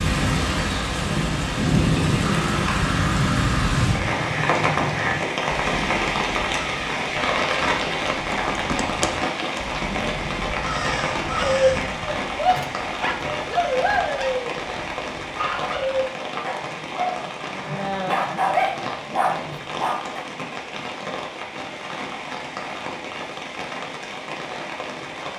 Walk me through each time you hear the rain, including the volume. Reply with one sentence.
The rain can be heard from 0.0 to 25.3 s, getting quieter.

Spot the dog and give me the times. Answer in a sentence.
The dog can be heard from 11.2 to 20.2 s.